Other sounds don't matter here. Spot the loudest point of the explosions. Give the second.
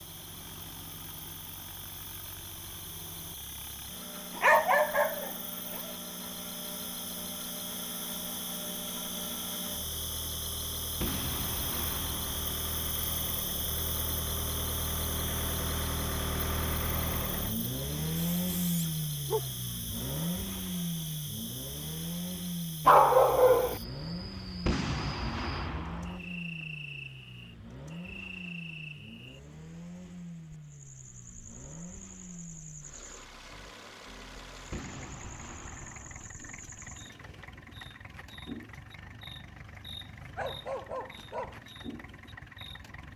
25 s.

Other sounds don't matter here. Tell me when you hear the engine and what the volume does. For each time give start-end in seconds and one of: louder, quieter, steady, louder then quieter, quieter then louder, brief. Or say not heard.
0.0-43.1 louder then quieter.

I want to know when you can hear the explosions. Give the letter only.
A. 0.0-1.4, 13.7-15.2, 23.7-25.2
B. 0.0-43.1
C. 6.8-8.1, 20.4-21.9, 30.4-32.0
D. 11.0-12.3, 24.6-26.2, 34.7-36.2
D.